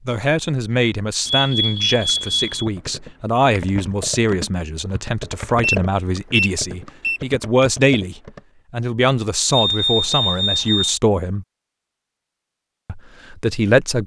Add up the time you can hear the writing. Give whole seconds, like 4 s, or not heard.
not heard.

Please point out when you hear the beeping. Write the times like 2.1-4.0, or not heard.
1.2-2.6, 5.6-7.2, 9.5-11.0.